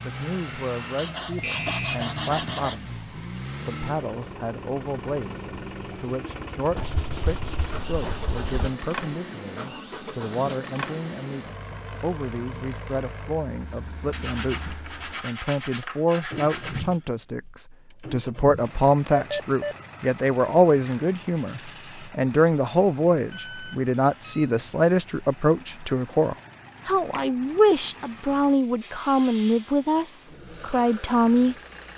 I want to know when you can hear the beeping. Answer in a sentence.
You can hear the beeping from 1.4 to 2.0 s, from 19.1 to 19.8 s and from 23.3 to 24.5 s.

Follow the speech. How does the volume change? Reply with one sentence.
The volume of the speech goes up.